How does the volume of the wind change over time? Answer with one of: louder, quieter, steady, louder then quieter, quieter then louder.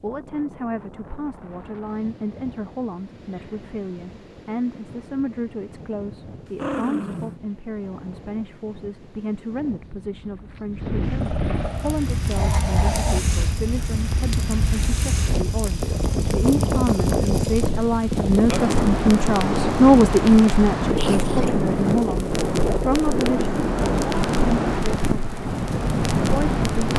louder.